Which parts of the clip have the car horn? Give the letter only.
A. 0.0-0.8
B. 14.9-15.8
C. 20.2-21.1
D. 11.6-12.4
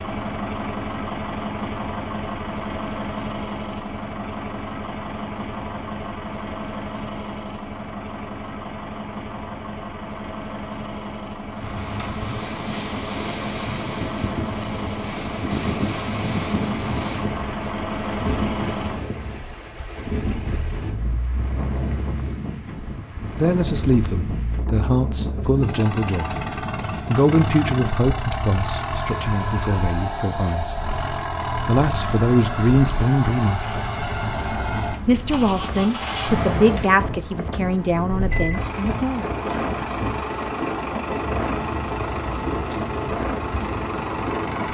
D.